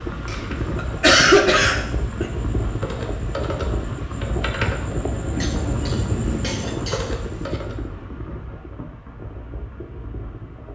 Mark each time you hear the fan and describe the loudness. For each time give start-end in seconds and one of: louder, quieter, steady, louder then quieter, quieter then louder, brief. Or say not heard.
0.0-10.6 quieter.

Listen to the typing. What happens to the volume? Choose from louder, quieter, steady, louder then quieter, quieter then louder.
louder.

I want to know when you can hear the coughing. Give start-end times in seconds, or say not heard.
0.2-2.2, 5.4-7.6.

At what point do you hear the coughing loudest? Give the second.
1 s.